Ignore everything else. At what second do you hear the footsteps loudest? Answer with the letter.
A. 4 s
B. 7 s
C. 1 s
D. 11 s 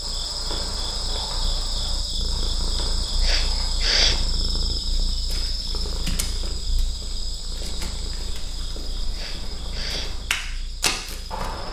D.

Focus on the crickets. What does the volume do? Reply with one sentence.
The loudness of the crickets goes down.